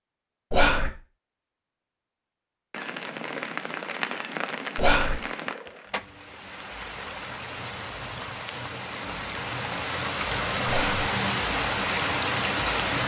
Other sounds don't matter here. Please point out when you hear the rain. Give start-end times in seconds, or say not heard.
2.7-13.0.